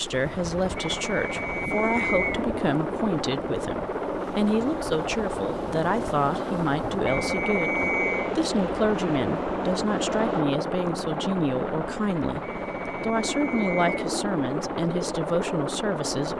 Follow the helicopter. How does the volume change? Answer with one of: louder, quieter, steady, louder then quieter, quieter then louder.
steady.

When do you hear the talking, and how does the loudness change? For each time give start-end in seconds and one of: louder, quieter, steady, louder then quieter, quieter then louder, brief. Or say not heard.
0.0-16.3 steady.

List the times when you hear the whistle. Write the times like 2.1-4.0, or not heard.
1.0-2.5, 7.0-8.3, 12.4-14.0.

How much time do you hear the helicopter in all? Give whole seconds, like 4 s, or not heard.
16 s.